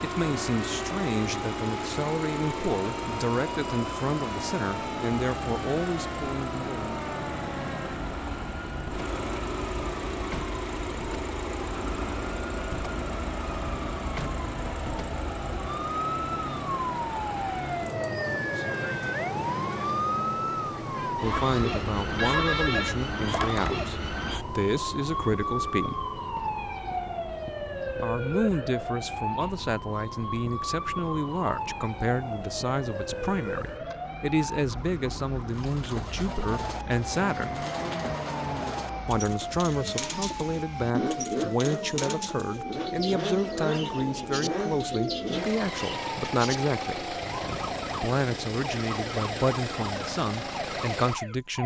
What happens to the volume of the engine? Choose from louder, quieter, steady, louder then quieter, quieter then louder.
quieter then louder.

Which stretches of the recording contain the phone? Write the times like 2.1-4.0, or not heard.
22.1-23.8.